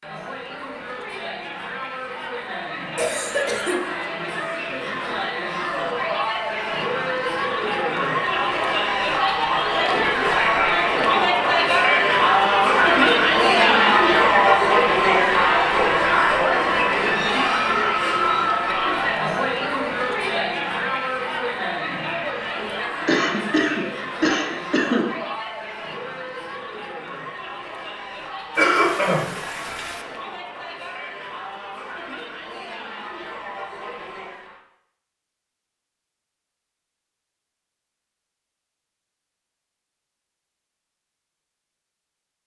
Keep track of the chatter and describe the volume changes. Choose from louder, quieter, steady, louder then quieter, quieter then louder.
louder then quieter.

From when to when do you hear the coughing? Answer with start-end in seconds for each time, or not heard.
3.0-3.9, 23.1-25.1, 28.6-30.0.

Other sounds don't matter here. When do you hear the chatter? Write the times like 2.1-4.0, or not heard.
0.0-34.6.